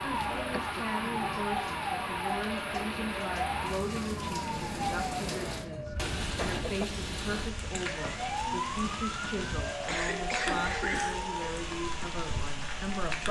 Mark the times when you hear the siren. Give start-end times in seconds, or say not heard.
0.0-13.2.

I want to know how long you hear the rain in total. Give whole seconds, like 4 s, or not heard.
13 s.